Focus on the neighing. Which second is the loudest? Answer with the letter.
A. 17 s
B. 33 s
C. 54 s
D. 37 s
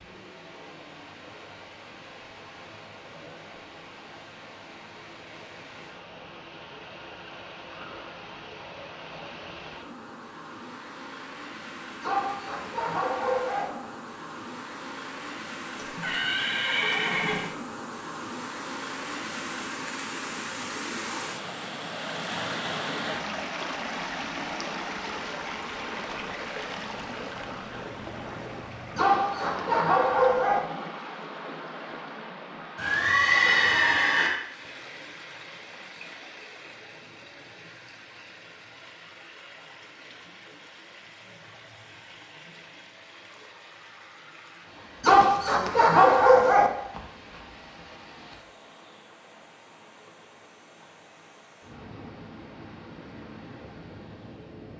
B.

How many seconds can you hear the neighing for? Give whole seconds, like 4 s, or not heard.
3 s.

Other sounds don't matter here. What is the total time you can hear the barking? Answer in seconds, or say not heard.
5 s.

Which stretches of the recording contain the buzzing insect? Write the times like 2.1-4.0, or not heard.
not heard.